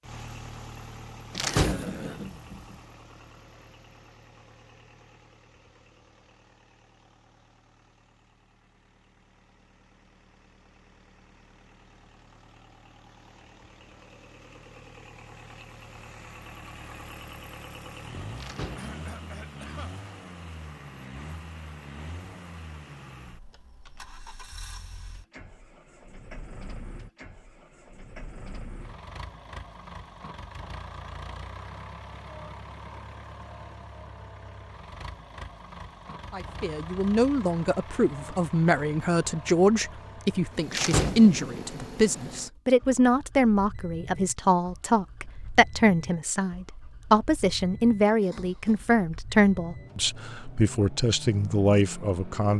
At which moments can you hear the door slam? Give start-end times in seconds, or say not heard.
1.3-2.6, 18.4-19.4, 40.7-41.6.